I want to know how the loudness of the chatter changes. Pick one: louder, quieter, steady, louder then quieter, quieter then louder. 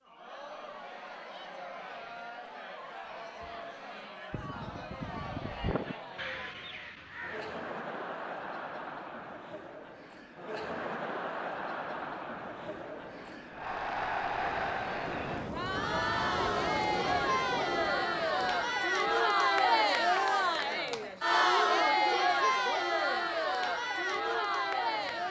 louder.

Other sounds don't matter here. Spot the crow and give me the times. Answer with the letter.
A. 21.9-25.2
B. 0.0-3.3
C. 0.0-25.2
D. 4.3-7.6
D.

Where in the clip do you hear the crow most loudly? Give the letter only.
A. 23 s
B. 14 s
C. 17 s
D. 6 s
D.